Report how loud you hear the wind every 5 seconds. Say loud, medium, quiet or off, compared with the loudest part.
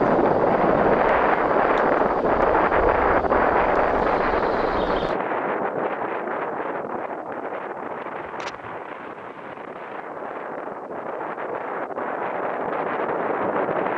loud, medium, medium.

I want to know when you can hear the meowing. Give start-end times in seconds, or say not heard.
8.2-8.8.